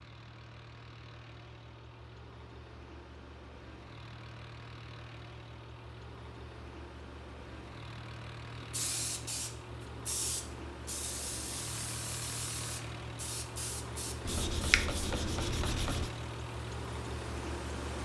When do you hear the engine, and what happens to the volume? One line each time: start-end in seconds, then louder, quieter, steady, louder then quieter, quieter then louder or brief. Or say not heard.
0.0-17.9 louder.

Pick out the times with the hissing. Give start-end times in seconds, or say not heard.
8.6-14.8.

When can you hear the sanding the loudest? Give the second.
15 s.